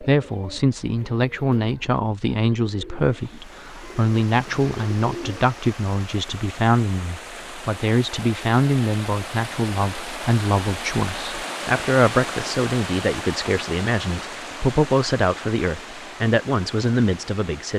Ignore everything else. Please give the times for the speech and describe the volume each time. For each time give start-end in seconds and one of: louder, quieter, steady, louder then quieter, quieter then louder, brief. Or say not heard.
0.0-17.7 steady.